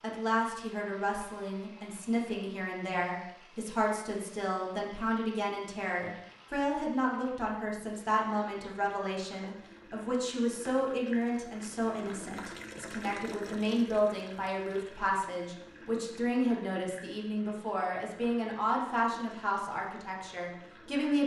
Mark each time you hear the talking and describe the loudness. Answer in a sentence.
You can hear the talking from 0.0 to 21.2 s, at a steady volume.